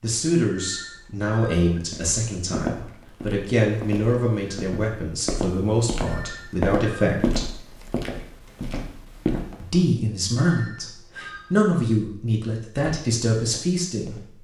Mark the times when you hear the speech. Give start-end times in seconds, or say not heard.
0.0-7.5, 9.6-14.3.